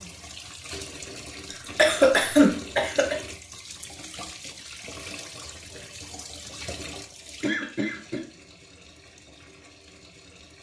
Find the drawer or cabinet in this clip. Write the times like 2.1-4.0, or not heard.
not heard.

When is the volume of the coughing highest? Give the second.
2 s.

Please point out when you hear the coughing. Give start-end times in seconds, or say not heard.
1.5-3.1, 7.4-8.2.